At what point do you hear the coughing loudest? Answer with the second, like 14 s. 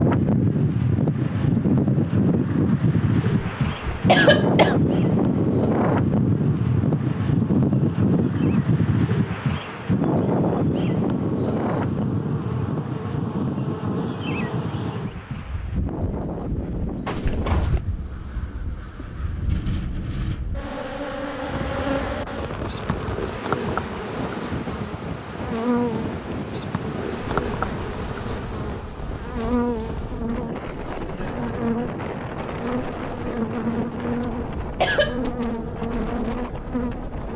4 s.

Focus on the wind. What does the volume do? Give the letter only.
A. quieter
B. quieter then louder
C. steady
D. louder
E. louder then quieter
A.